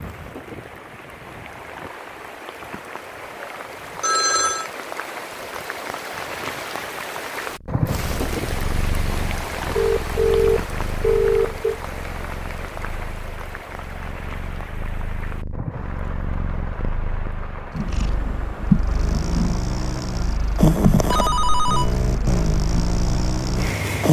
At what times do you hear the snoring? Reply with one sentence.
You can hear the snoring from 18.9 to 24.0 s.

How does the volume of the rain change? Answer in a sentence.
The loudness of the rain goes up, then down.